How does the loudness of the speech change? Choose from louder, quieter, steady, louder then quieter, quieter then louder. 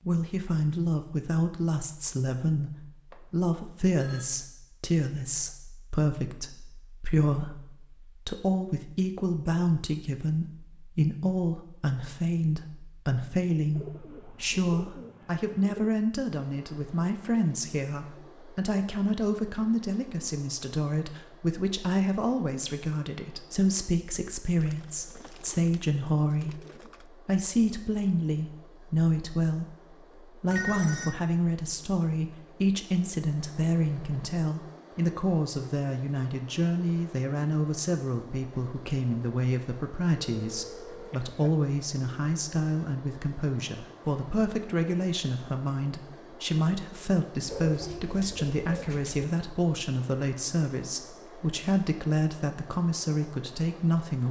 steady.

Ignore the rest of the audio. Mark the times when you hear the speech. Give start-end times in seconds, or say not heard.
0.0-54.2.